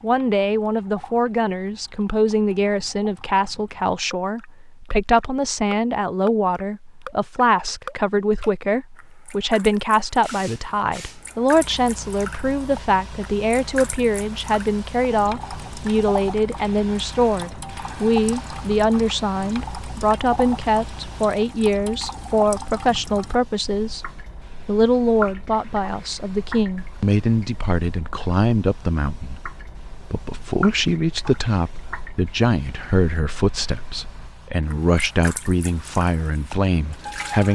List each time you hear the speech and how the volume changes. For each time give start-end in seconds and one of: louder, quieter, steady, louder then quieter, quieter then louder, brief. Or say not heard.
0.0-24.1 steady
24.6-37.5 steady.